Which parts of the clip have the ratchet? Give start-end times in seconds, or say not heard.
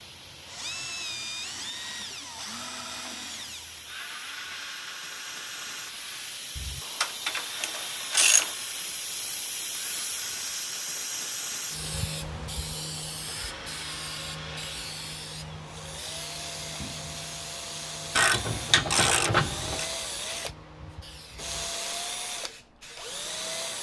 6.5-8.6, 18.1-19.9.